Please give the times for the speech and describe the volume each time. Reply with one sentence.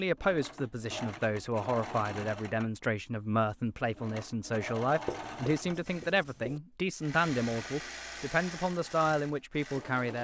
You can hear the speech from 0.0 to 10.1 s, at a steady volume.